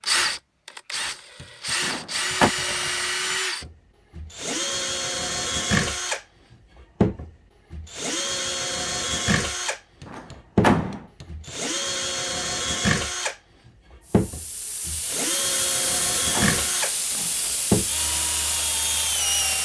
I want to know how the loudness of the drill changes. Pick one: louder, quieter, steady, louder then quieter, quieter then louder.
steady.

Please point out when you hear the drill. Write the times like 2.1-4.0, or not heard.
0.0-19.5.